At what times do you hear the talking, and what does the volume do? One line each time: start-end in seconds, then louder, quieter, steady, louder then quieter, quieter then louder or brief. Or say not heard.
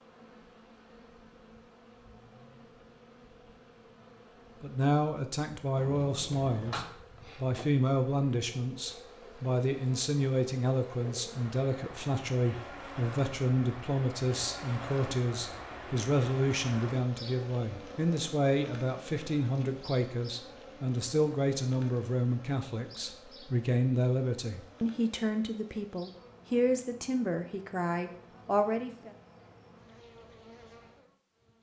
4.6-29.1 steady.